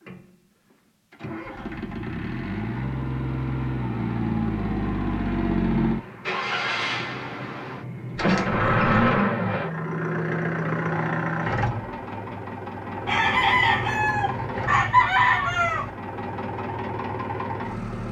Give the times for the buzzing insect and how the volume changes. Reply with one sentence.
You can't hear the buzzing insect here.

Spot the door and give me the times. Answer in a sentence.
You can hear the door from 8.1 to 9.2 s.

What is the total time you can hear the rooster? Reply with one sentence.
You can hear the rooster for 3 seconds altogether.